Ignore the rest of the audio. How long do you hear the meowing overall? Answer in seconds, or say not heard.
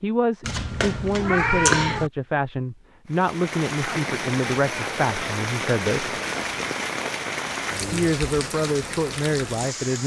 2 s.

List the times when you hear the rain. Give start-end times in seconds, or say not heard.
3.0-10.0.